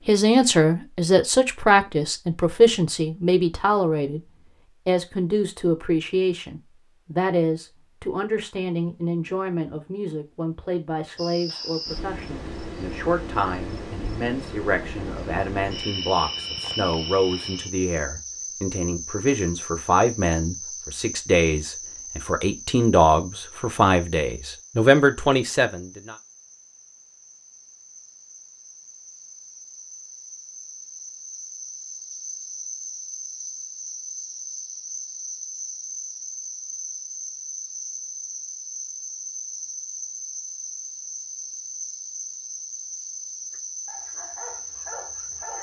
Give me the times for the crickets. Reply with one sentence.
You can hear the crickets from 11.2 to 45.5 s.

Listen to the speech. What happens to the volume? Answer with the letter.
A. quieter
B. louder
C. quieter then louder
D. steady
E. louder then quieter
C.